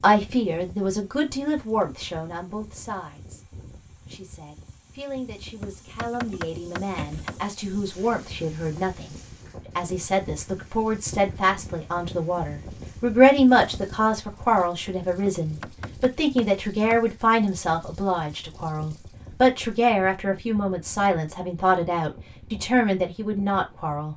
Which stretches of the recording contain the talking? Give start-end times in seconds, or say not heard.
0.0-3.4, 4.0-9.2, 9.8-24.1.